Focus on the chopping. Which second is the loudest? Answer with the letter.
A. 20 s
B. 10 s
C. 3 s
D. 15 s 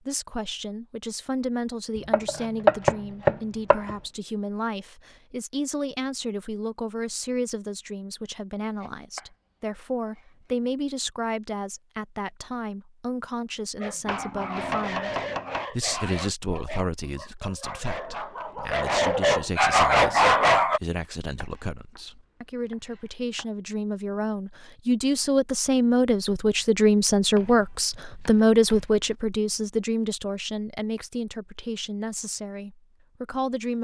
C.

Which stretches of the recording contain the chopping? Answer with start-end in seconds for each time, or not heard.
2.1-4.0, 8.8-9.2, 14.1-15.7, 21.4-22.0, 22.7-23.4, 27.4-28.9.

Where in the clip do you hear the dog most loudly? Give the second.
20 s.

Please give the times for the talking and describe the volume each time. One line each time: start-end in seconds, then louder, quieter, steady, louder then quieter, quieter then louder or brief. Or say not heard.
0.1-33.7 louder.